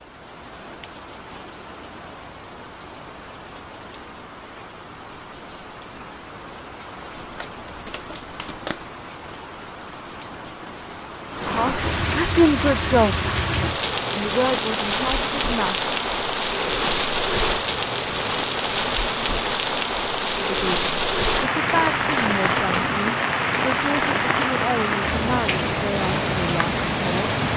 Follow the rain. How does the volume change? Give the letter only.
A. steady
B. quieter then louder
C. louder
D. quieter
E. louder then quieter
C.